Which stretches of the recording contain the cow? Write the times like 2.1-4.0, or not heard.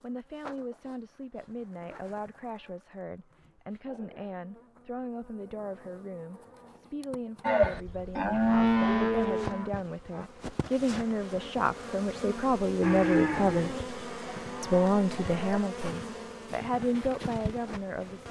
7.4-10.3, 12.8-15.9.